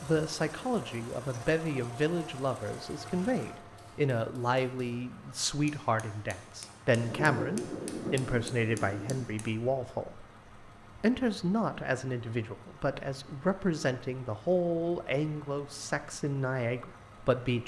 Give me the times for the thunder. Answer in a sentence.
You can hear the thunder from 7.0 to 9.3 s.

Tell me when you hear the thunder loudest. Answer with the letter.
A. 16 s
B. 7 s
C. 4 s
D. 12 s
B.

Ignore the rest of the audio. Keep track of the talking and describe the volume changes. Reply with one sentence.
The volume of the talking stays about the same.